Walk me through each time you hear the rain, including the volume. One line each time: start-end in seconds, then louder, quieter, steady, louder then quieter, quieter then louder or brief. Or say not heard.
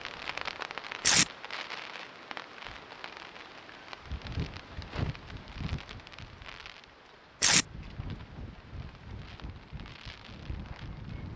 0.0-11.3 quieter.